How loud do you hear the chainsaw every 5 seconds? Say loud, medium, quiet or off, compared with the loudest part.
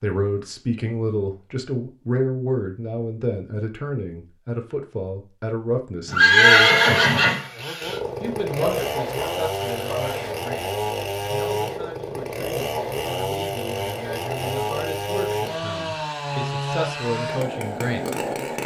off, loud, loud, loud.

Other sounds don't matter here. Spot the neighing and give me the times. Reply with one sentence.
You can hear the neighing from 6.0 to 7.5 s.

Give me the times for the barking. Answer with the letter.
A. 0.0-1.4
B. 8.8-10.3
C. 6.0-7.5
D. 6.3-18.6
B.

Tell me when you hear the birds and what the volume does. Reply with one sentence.
You can't hear the birds here.